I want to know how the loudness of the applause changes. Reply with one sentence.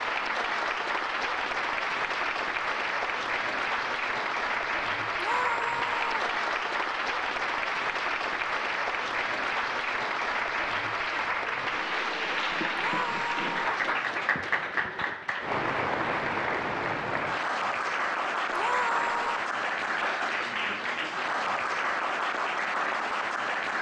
The volume of the applause stays about the same.